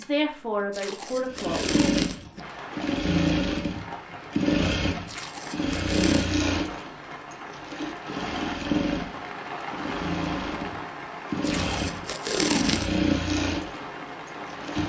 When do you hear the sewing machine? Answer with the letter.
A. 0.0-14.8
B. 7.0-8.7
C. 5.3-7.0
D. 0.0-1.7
A.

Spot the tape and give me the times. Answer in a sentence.
You can hear the tape from 0.7 to 2.5 s, from 5.0 to 6.3 s and from 11.4 to 13.0 s.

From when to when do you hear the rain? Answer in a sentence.
You can hear the rain from 2.4 to 14.8 s.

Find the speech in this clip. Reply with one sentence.
You can hear the speech from 0.0 to 1.7 s.